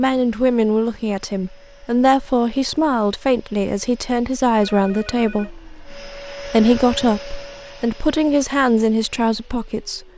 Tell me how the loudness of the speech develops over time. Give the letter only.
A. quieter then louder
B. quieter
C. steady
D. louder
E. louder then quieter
C.